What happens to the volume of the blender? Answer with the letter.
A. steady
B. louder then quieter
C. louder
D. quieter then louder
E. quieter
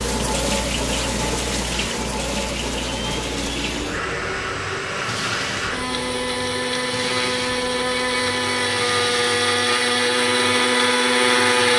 C.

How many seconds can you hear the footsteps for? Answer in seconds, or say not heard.
not heard.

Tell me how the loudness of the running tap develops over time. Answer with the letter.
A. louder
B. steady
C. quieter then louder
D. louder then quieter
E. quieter
E.